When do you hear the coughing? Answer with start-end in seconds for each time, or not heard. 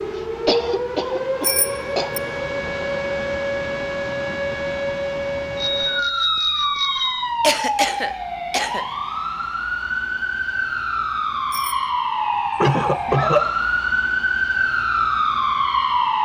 0.5-2.1, 7.4-8.8, 12.6-13.4.